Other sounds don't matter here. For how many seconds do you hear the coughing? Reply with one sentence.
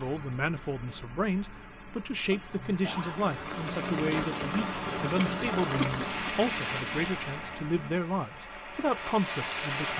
You can hear the coughing for 2 seconds altogether.